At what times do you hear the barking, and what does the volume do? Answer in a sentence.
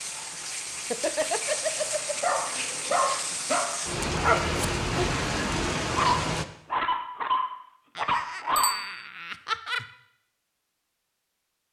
You can hear the barking from 2.2 to 8.8 s, at a steady volume.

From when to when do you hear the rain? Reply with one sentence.
The rain can be heard from 0.0 to 6.5 s.